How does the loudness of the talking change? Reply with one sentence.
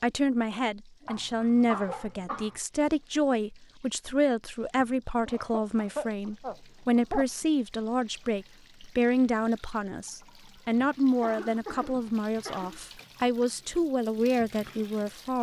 The volume of the talking stays about the same.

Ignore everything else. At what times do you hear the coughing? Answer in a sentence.
The coughing can be heard from 1.1 to 2.5 s, from 5.2 to 7.2 s and from 10.8 to 12.8 s.